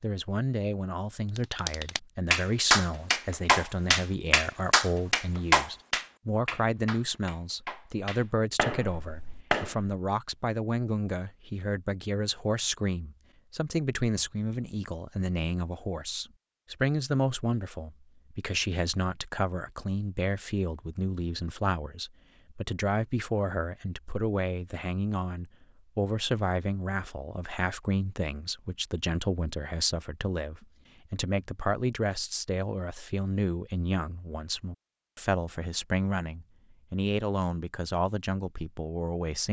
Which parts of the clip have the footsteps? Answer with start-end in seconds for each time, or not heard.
not heard.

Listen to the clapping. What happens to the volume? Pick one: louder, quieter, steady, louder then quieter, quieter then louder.
quieter.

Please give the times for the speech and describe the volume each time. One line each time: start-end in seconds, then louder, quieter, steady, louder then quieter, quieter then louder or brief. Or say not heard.
0.0-39.4 steady.